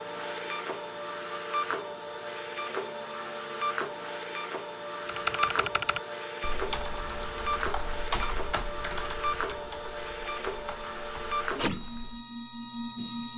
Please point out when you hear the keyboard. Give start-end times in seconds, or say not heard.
5.0-12.2.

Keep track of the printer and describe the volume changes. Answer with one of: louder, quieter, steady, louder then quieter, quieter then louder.
steady.